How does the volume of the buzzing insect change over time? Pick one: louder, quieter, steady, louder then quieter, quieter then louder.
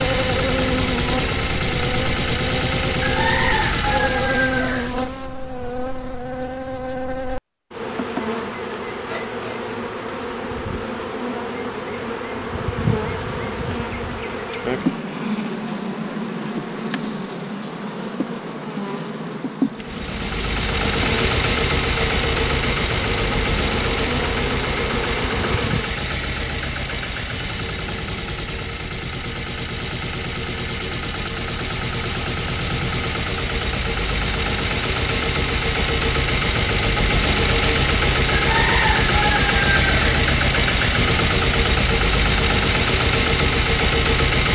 steady.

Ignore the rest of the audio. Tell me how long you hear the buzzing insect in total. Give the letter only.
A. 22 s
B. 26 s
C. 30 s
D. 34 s
B.